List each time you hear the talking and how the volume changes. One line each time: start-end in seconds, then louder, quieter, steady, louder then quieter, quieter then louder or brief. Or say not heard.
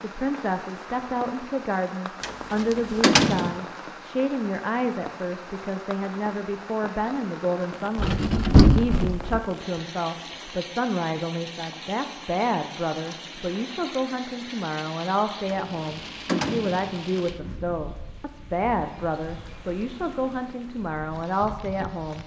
0.0-22.2 steady.